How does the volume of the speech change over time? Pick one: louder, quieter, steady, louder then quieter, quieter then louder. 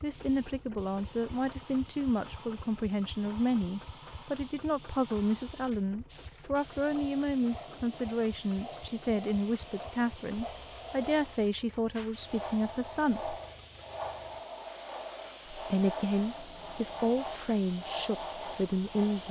steady.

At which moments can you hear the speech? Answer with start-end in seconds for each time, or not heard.
0.0-13.3, 15.5-19.2.